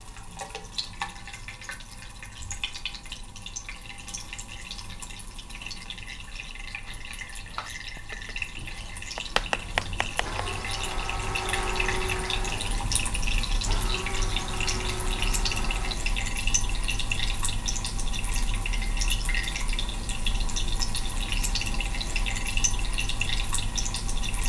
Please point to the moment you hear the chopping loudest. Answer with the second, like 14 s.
10 s.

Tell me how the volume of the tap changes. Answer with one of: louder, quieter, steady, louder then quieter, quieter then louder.
louder.